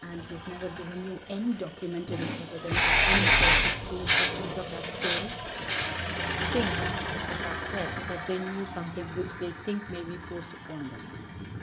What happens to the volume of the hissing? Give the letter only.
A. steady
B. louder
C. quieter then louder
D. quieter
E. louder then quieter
D.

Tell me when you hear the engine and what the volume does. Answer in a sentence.
The engine can be heard from 0.0 to 11.5 s, getting louder then quieter.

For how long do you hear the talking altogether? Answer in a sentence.
You can hear the talking for 10 seconds altogether.